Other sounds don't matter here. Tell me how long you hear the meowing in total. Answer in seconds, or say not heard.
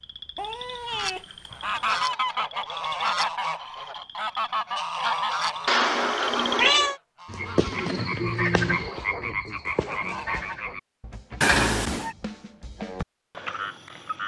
4 s.